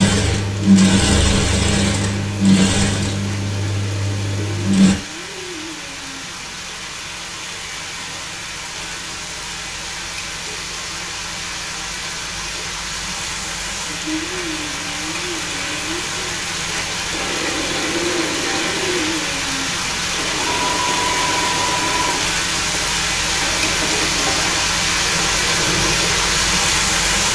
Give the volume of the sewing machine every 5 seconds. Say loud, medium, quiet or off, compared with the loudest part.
loud, off, off, medium, medium, quiet.